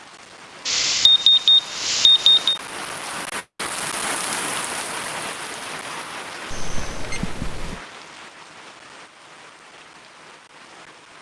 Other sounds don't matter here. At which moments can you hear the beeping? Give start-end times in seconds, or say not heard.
0.7-2.6, 6.5-7.8.